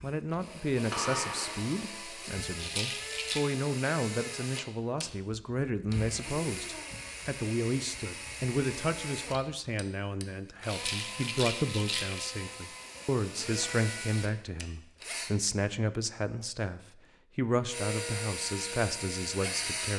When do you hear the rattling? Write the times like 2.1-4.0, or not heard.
2.5-3.4, 10.7-12.3.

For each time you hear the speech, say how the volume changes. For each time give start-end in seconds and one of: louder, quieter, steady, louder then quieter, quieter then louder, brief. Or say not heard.
0.0-19.9 steady.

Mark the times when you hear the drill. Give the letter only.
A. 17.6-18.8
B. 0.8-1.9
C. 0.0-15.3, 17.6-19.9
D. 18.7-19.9
C.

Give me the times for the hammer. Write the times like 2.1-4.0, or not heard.
0.8-1.9.